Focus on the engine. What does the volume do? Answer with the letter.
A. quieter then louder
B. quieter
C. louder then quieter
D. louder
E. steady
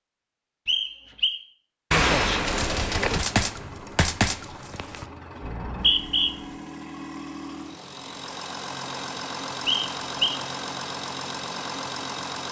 D.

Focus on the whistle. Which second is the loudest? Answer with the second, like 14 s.
6 s.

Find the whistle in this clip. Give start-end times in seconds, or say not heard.
0.7-1.4, 5.5-6.3, 9.7-10.4.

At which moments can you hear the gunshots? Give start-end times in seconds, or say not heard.
1.9-5.0.